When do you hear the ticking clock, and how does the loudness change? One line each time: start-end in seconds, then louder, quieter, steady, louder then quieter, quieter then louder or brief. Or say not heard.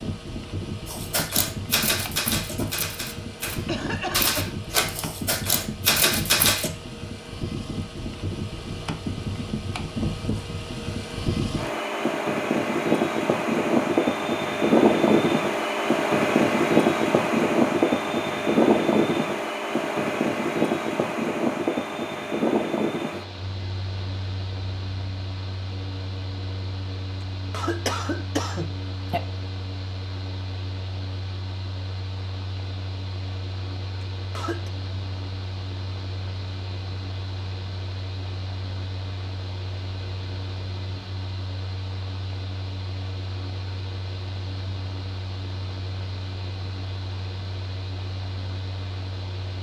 not heard.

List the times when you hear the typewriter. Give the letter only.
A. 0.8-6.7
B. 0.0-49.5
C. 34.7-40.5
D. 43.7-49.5
A.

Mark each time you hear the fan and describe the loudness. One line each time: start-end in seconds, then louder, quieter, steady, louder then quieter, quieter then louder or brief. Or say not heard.
0.0-49.5 louder then quieter.